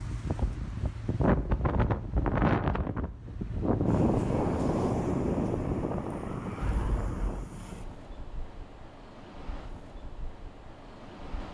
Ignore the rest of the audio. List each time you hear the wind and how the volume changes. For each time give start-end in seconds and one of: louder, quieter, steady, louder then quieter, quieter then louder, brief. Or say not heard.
0.0-11.5 quieter.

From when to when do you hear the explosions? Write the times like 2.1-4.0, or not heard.
6.6-7.8.